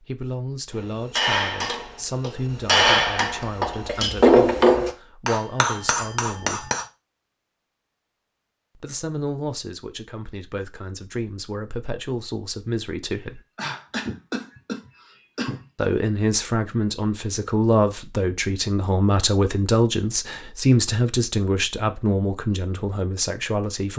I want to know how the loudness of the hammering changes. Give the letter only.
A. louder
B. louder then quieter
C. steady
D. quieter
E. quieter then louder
B.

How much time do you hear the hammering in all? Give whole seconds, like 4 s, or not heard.
6 s.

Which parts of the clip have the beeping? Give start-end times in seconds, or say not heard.
not heard.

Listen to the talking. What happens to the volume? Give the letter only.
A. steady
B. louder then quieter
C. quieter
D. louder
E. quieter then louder
D.